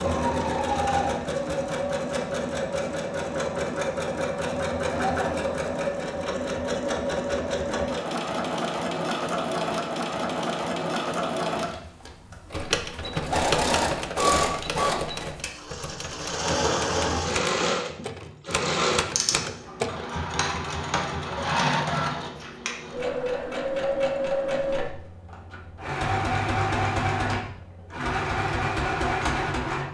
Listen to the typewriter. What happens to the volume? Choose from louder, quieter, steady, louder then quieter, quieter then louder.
quieter then louder.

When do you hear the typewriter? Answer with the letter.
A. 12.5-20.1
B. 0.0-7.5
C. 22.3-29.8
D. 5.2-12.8
A.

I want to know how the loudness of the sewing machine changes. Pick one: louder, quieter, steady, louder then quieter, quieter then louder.
steady.